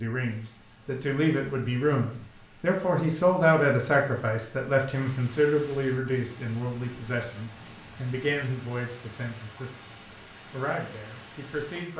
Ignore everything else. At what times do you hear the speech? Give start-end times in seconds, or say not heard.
0.0-9.8, 10.5-11.9.